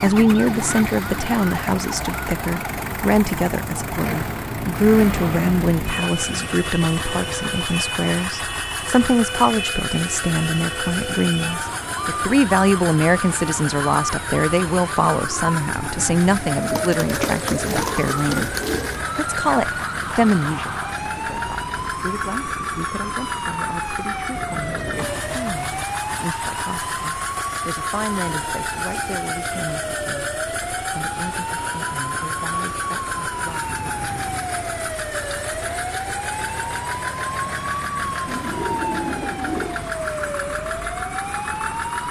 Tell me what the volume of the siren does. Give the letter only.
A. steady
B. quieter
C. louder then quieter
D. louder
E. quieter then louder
A.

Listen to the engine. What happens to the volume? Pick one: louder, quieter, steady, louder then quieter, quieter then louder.
steady.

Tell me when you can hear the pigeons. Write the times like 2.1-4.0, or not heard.
16.6-19.0, 38.2-39.9.